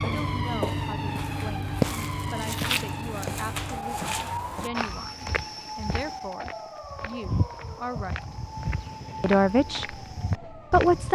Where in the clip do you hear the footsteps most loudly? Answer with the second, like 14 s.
2 s.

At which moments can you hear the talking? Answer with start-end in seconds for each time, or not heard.
0.0-1.7, 2.3-8.3, 9.2-11.1.